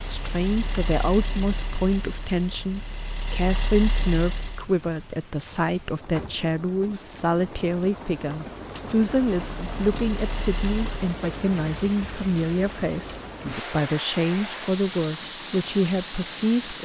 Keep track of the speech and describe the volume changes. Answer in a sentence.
The loudness of the speech stays about the same.